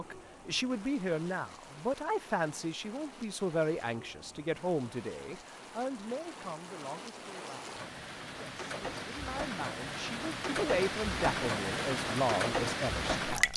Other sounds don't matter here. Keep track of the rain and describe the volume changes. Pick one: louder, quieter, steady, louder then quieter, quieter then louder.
louder.